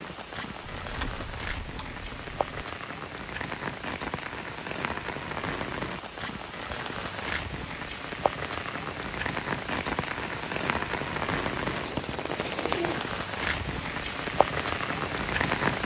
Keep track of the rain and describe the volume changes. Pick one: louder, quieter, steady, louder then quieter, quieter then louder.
louder.